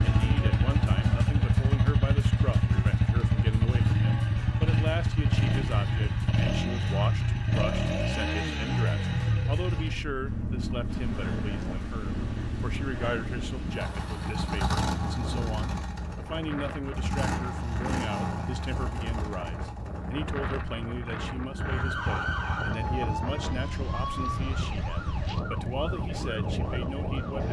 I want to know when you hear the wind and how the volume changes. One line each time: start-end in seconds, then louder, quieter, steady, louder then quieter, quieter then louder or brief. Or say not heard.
10.8-27.4 louder.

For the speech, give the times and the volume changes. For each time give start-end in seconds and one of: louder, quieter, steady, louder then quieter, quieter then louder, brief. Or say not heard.
0.1-27.4 steady.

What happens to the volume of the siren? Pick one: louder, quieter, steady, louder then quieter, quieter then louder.
quieter.